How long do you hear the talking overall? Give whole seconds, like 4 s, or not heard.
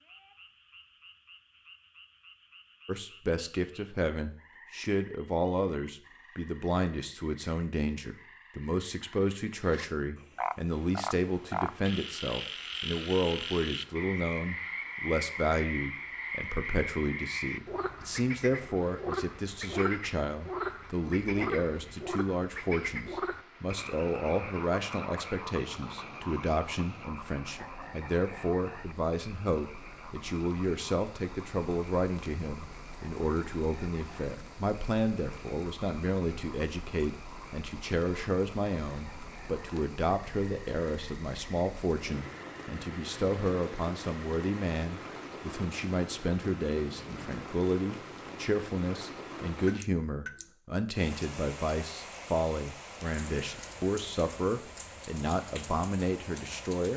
54 s.